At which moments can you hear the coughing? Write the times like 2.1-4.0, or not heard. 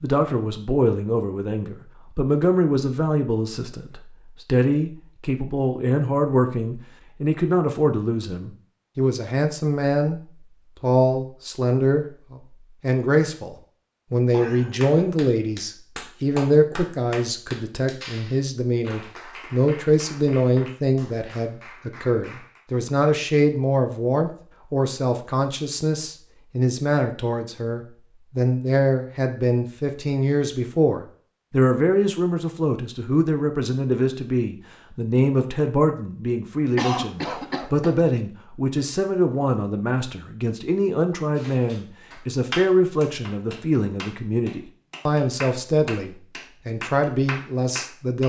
14.3-15.1, 36.8-38.0.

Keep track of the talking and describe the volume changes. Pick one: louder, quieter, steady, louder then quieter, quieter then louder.
steady.